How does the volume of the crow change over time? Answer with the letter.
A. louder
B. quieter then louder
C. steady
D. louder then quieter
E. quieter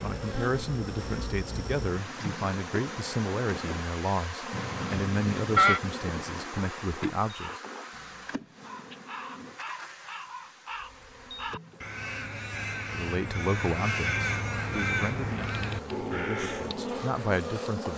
A.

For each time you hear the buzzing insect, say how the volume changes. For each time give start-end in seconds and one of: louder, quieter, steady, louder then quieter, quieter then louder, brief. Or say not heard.
0.0-17.9 quieter then louder.